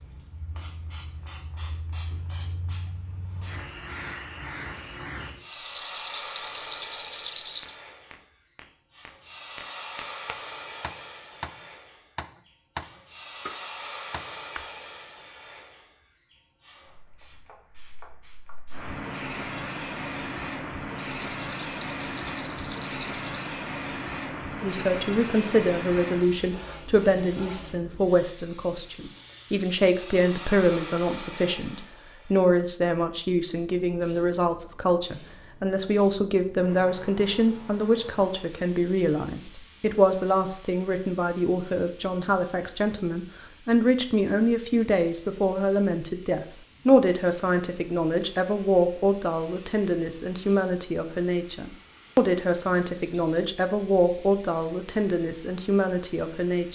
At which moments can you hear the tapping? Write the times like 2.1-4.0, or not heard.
7.6-14.7.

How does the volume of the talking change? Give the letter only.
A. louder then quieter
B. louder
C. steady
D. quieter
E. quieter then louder
C.